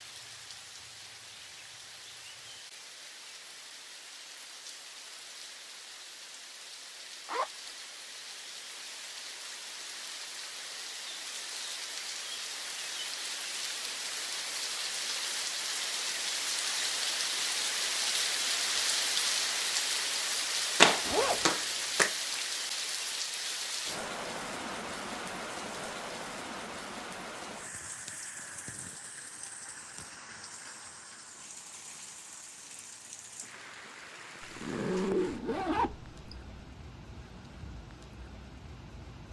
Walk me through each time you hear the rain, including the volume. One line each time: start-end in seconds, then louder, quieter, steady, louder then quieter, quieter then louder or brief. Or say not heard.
0.0-39.2 louder then quieter.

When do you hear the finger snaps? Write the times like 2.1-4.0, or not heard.
20.8-22.1.